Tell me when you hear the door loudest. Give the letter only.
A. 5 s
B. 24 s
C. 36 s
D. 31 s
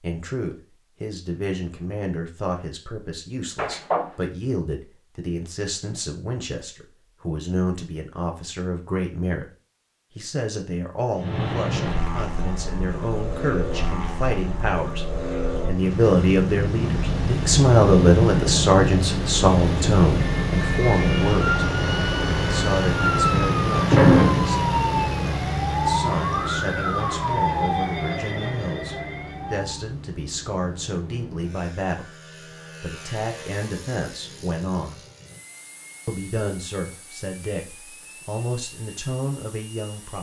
B.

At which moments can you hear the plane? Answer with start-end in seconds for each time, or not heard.
11.2-40.1.